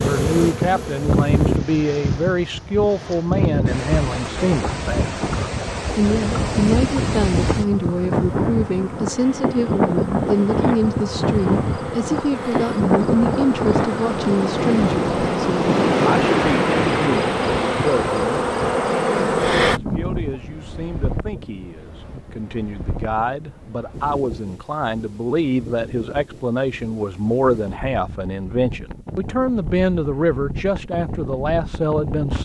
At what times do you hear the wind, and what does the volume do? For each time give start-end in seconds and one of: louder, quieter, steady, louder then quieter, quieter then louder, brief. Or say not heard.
0.0-32.3 quieter.